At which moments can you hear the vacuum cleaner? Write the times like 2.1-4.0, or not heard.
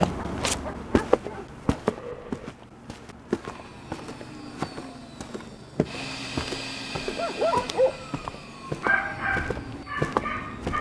3.4-10.7.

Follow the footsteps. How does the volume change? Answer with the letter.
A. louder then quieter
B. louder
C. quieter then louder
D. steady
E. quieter
C.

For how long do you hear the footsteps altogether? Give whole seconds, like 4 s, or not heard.
11 s.